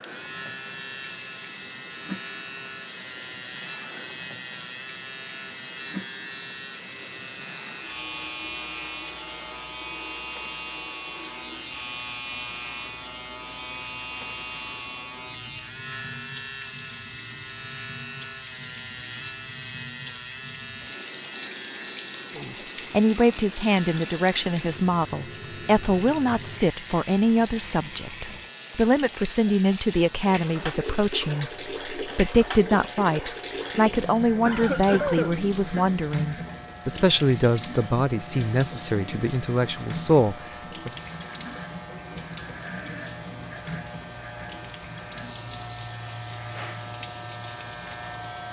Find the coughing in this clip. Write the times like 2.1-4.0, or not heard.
34.5-35.9.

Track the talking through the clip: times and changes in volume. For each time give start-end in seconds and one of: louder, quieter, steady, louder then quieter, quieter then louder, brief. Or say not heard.
22.4-40.9 steady.